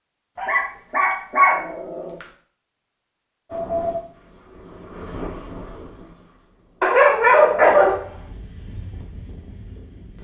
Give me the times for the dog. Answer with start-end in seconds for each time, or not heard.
0.3-2.2, 6.8-8.1.